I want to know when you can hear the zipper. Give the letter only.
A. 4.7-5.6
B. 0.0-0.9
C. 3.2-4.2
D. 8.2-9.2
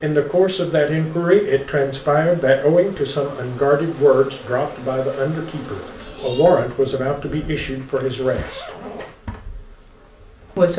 D.